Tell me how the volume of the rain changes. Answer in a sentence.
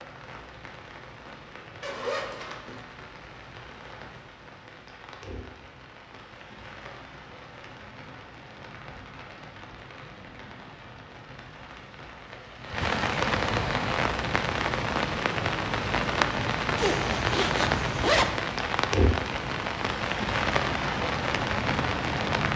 The volume of the rain goes up.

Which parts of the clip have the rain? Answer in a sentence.
You can hear the rain from 0.0 to 22.5 s.